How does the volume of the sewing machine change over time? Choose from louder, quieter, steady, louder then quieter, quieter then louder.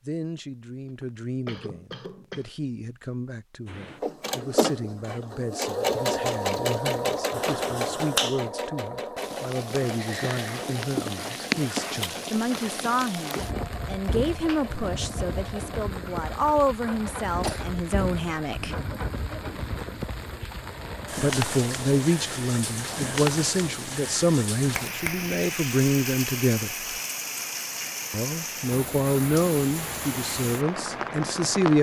quieter.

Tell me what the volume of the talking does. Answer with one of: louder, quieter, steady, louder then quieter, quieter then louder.
louder.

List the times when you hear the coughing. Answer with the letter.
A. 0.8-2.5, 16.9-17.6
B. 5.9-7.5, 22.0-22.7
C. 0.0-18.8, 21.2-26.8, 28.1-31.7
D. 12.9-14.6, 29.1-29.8
A.